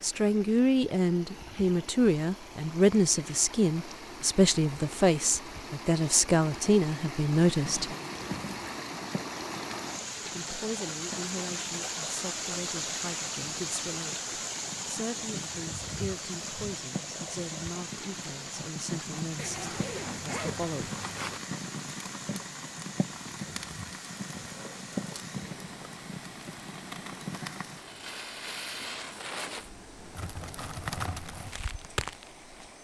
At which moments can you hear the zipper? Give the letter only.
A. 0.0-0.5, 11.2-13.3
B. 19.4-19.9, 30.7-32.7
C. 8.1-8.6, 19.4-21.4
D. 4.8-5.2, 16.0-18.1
C.